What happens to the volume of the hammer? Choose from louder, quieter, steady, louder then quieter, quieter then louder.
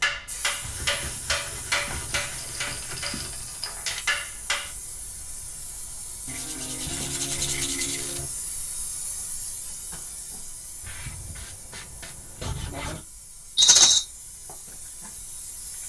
quieter then louder.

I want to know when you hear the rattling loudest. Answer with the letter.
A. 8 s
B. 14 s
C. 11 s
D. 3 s
B.